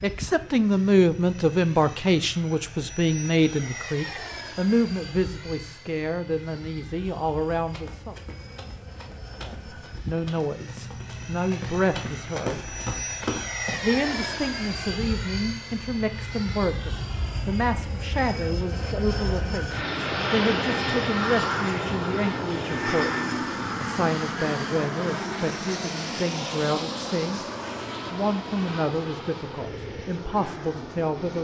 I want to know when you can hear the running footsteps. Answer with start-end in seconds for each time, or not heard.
7.5-13.9.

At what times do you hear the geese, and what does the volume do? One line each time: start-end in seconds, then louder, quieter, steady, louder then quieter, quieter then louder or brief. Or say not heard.
not heard.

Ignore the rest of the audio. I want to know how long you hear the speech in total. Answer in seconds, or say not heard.
28 s.